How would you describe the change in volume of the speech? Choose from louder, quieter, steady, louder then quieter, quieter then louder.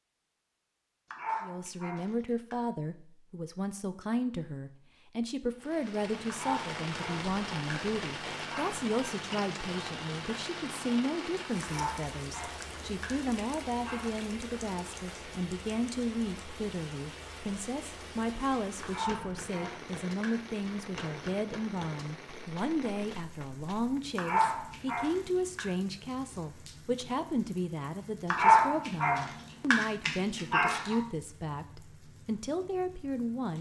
steady.